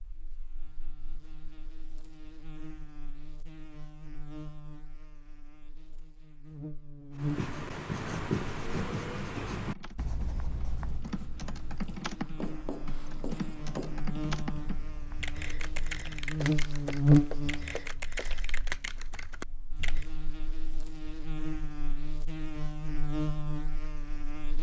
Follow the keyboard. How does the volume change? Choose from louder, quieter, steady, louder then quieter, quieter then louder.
steady.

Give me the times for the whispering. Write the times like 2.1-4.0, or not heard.
not heard.